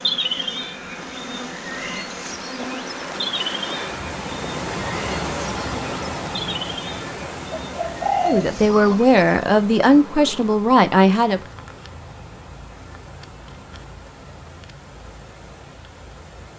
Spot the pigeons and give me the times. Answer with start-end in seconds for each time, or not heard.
7.5-9.0.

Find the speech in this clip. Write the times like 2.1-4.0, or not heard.
8.2-11.4.